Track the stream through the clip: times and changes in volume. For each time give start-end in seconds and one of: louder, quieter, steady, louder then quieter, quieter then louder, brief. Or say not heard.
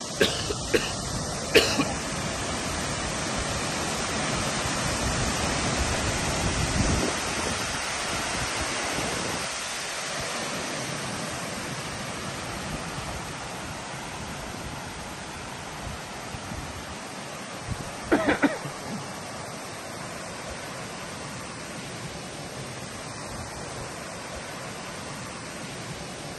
0.0-26.3 quieter.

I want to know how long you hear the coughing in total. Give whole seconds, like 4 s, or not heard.
3 s.